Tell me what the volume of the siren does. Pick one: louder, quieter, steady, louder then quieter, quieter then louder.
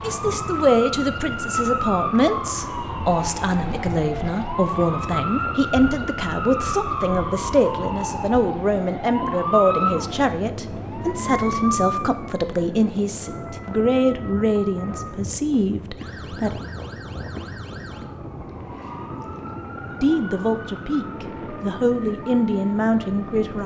quieter.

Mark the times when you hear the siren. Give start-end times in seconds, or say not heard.
0.0-23.6.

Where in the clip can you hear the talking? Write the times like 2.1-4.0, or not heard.
0.0-16.6, 20.0-23.6.